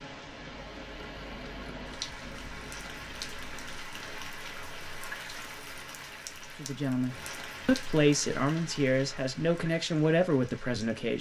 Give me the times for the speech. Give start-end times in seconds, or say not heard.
6.5-11.1.